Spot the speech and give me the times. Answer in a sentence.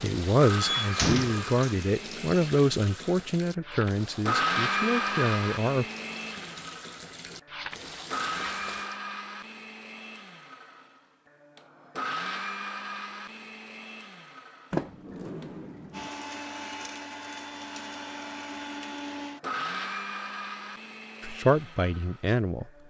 The speech can be heard from 0.0 to 5.8 s and from 21.2 to 22.6 s.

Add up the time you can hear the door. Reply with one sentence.
The door can be heard for 2 seconds in total.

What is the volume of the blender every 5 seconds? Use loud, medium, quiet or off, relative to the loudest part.
loud, loud, medium, medium, medium.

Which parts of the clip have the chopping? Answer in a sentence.
The chopping can't be heard in this clip.